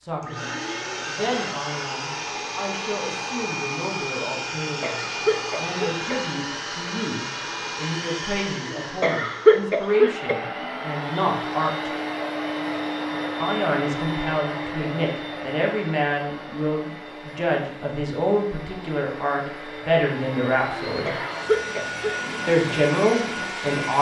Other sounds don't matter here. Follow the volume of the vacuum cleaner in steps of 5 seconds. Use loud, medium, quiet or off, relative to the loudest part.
loud, loud, loud, medium, loud.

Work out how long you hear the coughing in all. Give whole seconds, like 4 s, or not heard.
4 s.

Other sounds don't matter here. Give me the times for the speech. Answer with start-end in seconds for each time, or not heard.
0.0-11.9, 13.4-21.1, 22.4-23.9.